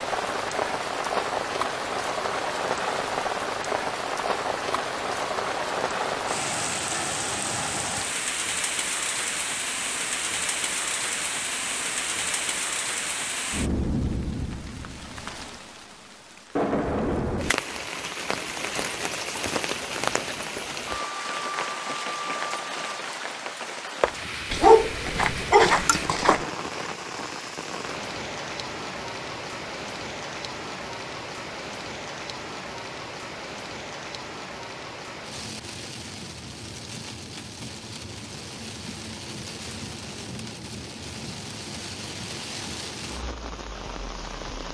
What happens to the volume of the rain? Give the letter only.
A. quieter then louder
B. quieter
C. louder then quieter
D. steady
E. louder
B.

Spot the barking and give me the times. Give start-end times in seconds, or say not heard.
24.5-26.4.